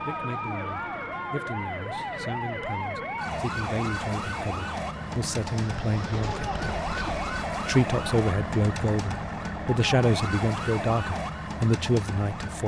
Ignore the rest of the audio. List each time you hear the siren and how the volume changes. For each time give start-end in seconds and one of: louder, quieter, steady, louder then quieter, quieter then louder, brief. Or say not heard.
0.0-12.6 steady.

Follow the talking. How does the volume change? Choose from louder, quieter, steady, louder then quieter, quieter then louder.
louder.